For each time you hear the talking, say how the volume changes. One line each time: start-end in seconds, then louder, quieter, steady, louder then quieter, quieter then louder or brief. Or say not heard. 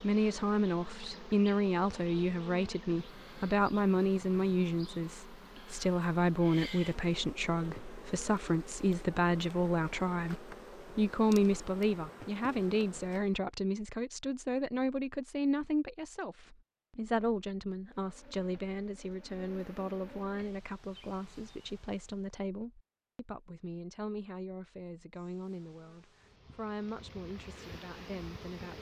0.0-28.7 quieter.